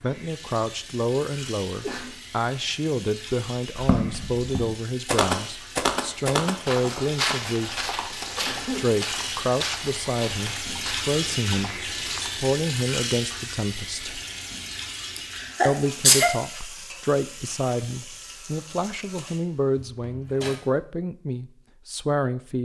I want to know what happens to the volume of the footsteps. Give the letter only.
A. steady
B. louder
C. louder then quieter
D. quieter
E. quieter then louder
D.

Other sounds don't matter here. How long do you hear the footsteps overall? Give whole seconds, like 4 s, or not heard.
9 s.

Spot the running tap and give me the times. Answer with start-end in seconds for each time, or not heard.
0.0-20.6.